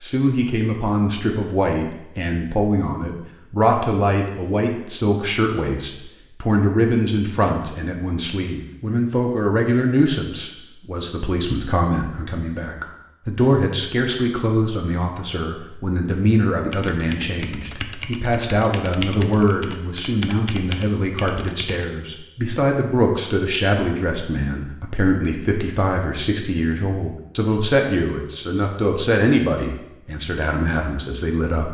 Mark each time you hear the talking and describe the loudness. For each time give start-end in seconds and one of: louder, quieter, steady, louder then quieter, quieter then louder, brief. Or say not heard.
0.0-31.7 steady.